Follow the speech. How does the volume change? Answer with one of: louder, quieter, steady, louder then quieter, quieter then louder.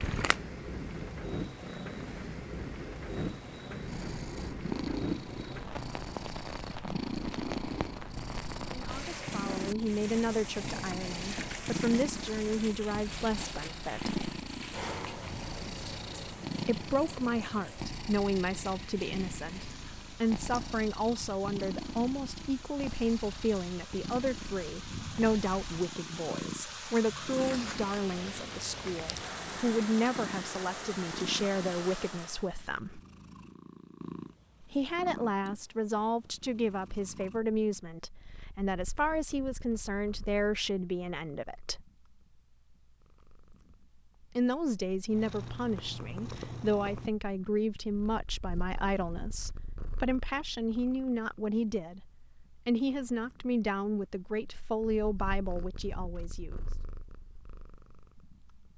steady.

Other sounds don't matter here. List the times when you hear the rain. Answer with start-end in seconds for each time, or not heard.
0.0-32.5.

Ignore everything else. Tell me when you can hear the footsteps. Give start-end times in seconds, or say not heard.
not heard.